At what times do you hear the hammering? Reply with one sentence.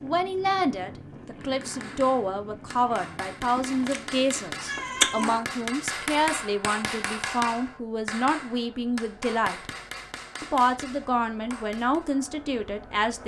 You can hear the hammering from 1.4 to 12.1 s.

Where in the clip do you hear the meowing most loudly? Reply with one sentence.
The loudest moment of the meowing is at 5 seconds.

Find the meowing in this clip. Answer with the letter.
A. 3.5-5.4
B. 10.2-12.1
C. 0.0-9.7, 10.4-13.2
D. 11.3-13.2
A.